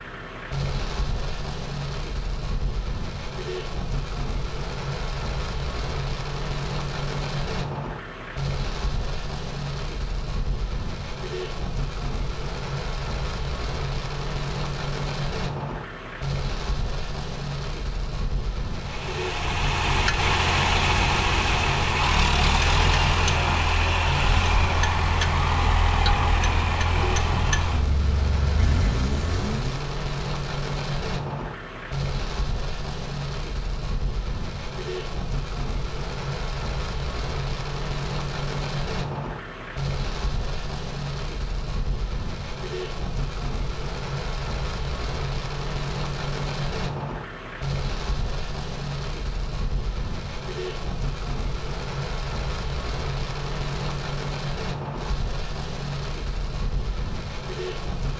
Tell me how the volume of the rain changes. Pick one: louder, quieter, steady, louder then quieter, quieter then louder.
steady.